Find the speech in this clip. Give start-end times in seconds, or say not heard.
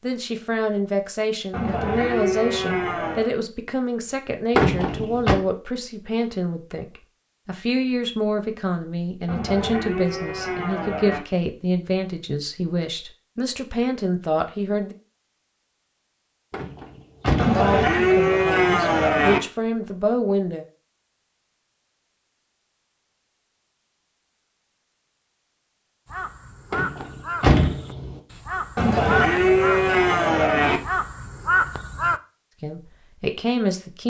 0.0-14.9, 17.5-20.6, 32.6-34.0.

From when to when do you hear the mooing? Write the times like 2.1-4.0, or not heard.
1.5-3.3, 9.2-11.2, 17.4-19.4, 28.8-30.8.